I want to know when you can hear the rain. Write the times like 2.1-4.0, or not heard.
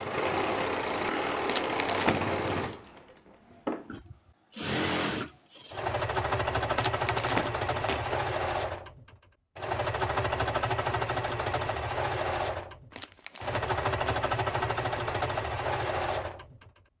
not heard.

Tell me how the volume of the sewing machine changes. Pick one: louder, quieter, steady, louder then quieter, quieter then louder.
steady.